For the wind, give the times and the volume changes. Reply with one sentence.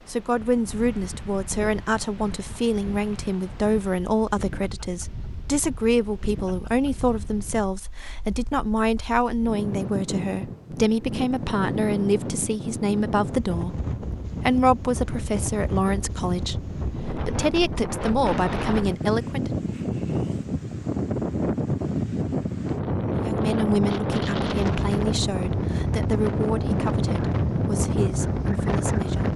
The wind can be heard from 0.0 to 29.3 s, getting louder.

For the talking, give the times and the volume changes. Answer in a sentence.
The talking can be heard from 0.1 to 19.6 s, at a steady volume; and from 23.1 to 29.3 s, getting quieter.